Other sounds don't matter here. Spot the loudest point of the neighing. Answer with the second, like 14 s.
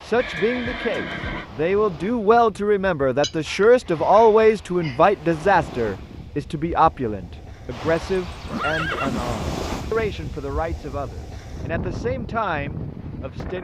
9 s.